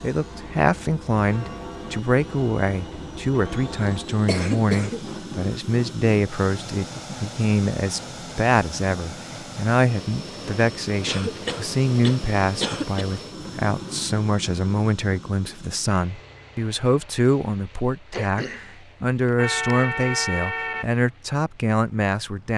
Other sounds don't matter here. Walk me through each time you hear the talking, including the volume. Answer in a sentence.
The talking can be heard from 0.0 to 22.5 s, at a steady volume.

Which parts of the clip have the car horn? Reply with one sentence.
You can hear the car horn from 19.4 to 20.9 s.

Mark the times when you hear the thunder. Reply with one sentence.
You can't hear the thunder here.